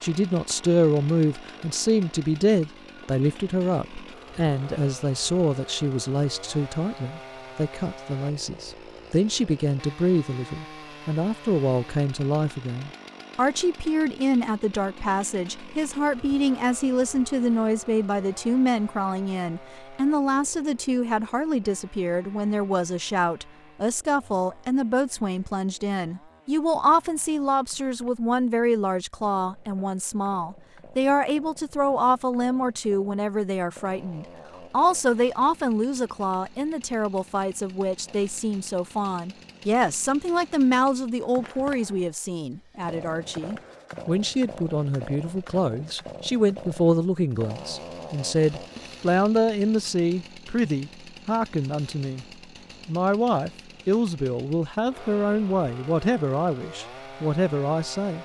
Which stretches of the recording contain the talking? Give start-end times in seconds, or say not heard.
0.0-52.2, 52.9-58.1.